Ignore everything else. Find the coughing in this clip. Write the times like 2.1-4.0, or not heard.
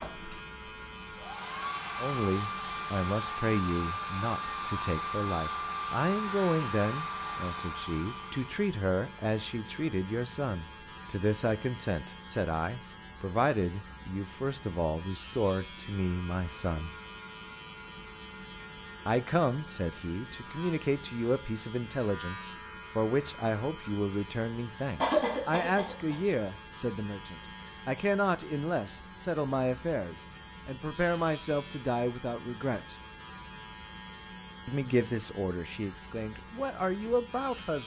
25.0-26.1.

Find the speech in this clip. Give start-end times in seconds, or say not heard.
1.9-16.9, 19.1-33.0, 34.6-37.8.